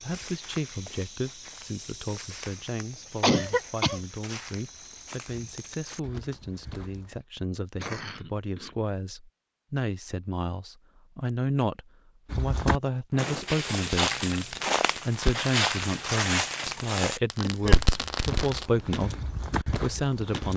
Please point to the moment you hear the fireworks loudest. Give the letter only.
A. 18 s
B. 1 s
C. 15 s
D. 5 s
A.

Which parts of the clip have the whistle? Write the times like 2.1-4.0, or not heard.
not heard.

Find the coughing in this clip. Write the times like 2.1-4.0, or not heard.
3.2-4.0, 7.6-8.8, 17.4-17.8.